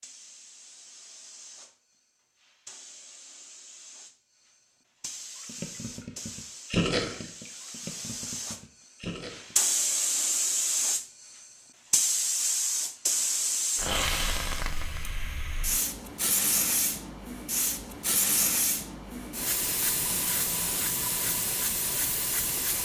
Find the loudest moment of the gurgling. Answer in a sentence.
The volume of the gurgling peaks at 7 seconds.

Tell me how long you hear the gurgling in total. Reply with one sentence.
You can hear the gurgling for 4 seconds altogether.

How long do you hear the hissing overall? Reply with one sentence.
You can hear the hissing for 23 seconds altogether.